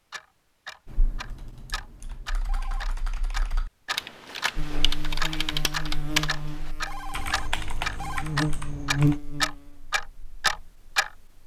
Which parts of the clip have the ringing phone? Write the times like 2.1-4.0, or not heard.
2.4-2.9, 6.7-8.2.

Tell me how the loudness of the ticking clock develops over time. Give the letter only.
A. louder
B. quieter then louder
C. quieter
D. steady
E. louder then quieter
A.